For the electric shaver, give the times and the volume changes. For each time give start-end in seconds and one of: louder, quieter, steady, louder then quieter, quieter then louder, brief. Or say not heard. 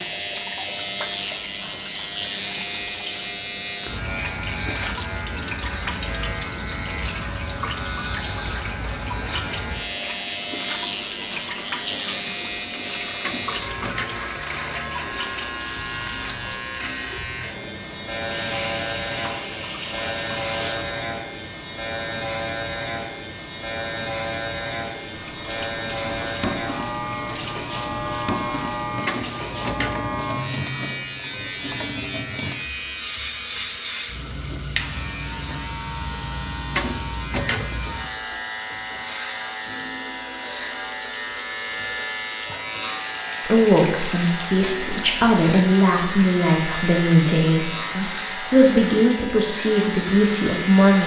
0.0-51.0 steady.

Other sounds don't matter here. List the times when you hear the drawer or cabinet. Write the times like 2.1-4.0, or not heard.
13.2-14.2, 29.1-30.1, 36.7-37.9.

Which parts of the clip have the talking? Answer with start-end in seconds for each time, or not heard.
43.4-51.0.